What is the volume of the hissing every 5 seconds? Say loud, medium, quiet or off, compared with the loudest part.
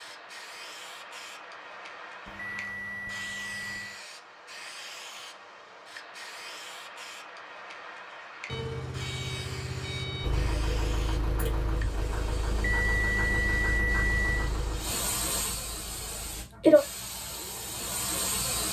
quiet, quiet, quiet, loud.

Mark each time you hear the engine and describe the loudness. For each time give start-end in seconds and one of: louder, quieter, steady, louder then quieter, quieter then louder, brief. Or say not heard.
10.2-16.5 quieter.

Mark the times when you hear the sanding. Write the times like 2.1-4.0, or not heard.
not heard.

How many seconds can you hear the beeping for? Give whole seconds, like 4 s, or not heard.
6 s.